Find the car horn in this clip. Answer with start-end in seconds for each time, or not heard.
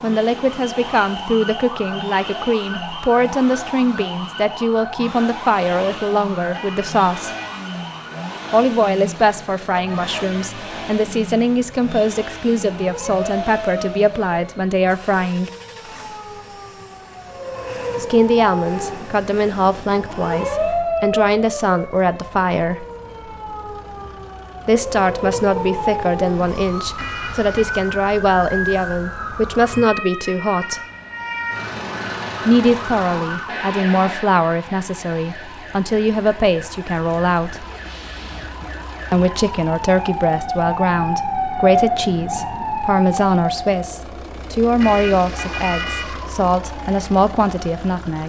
6.5-7.7, 26.9-27.8, 44.8-46.2.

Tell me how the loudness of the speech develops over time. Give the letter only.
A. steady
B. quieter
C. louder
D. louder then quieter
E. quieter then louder
A.